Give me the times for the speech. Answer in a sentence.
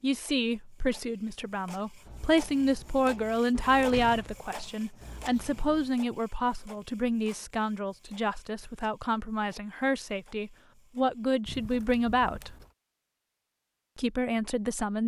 You can hear the speech from 0.0 to 12.6 s and from 13.9 to 15.0 s.